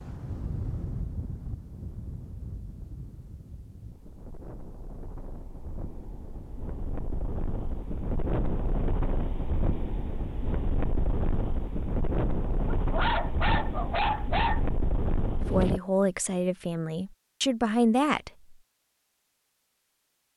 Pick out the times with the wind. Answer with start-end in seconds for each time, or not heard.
0.0-15.8.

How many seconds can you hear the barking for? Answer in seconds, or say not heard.
2 s.